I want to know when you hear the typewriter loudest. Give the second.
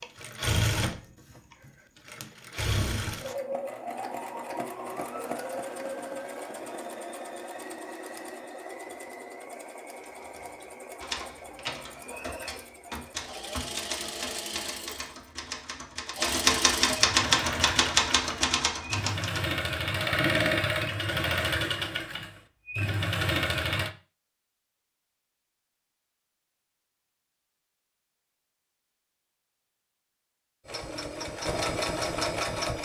17 s.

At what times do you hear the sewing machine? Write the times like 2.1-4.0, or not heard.
0.0-23.9, 30.6-32.8.